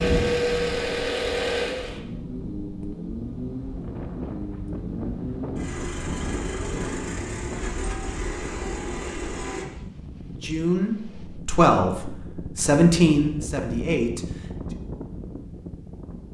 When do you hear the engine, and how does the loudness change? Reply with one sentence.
The engine can be heard from 0.0 to 9.7 s, getting quieter.